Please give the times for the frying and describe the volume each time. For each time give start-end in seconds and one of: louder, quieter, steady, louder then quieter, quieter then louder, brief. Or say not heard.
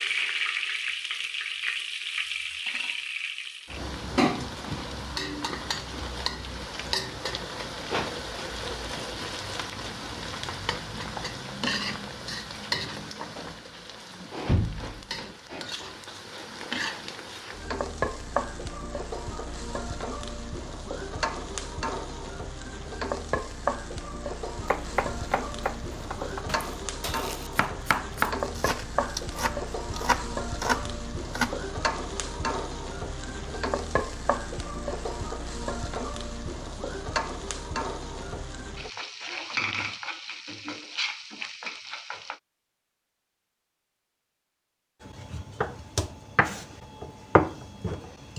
0.0-42.4 steady.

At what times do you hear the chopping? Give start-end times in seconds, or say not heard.
24.6-31.6, 45.0-48.3.